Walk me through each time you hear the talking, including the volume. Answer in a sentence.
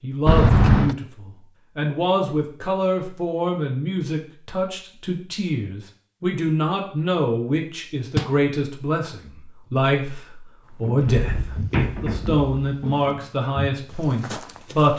The talking can be heard from 0.0 to 14.9 s, at a steady volume.